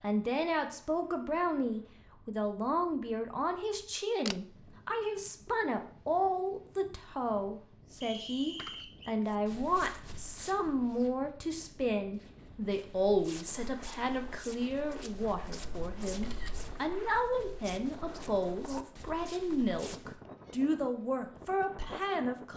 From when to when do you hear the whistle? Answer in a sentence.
The whistle can be heard from 8.0 to 9.2 s.